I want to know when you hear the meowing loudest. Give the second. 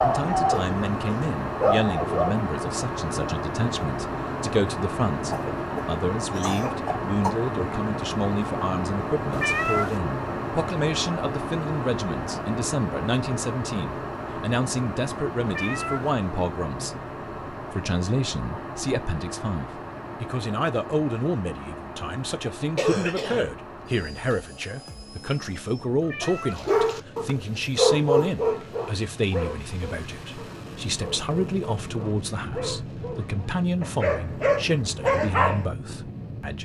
10 s.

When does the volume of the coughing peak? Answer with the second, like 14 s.
23 s.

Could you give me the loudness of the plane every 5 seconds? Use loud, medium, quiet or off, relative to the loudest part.
loud, loud, loud, medium, medium, quiet, medium, medium.